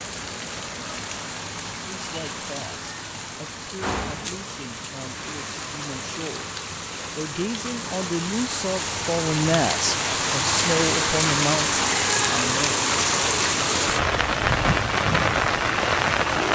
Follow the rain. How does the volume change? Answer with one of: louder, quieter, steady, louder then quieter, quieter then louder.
louder.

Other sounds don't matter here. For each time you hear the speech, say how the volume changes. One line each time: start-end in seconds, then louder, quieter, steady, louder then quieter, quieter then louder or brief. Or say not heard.
1.9-12.9 louder.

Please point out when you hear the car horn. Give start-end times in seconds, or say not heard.
not heard.